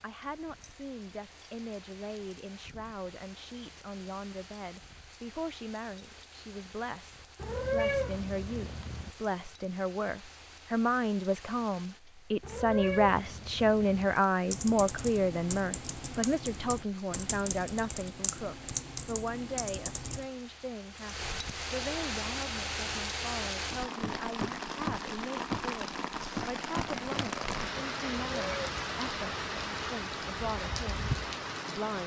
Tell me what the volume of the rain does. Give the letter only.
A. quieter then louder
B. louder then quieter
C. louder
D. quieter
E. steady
C.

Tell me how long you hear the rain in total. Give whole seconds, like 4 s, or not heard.
32 s.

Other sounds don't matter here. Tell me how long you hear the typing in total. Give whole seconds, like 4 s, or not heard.
6 s.